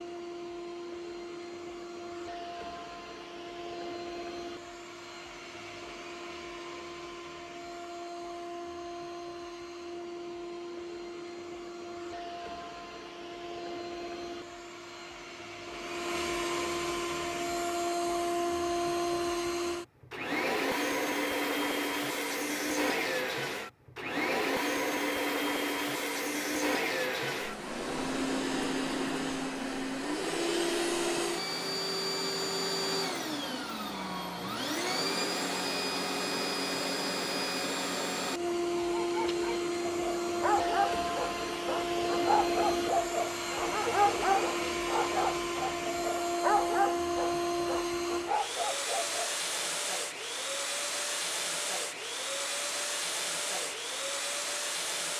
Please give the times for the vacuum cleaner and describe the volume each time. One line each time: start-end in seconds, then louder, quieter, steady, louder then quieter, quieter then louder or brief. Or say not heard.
0.0-55.1 louder.